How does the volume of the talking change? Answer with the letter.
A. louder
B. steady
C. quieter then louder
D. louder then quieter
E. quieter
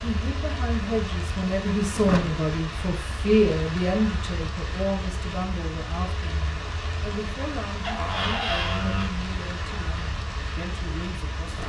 E.